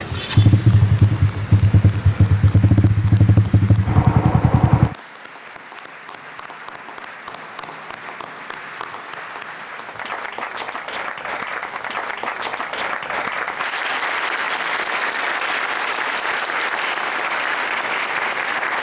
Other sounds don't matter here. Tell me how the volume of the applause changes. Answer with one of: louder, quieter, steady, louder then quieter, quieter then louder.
louder.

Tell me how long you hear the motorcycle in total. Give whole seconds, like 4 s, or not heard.
5 s.